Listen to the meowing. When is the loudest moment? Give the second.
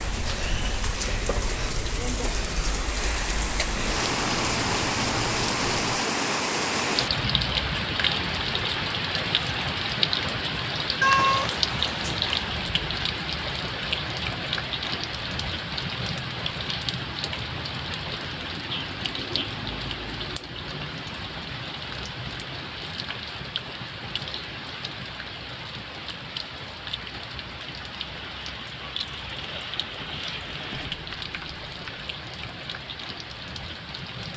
11 s.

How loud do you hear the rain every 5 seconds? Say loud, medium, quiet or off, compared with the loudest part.
loud, loud, loud, medium, medium, medium, medium.